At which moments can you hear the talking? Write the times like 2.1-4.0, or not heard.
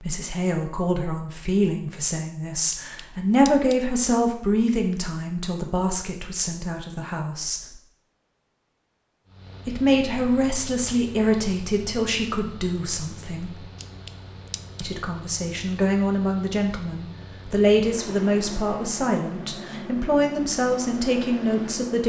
0.0-7.6, 9.7-13.6, 14.8-22.0.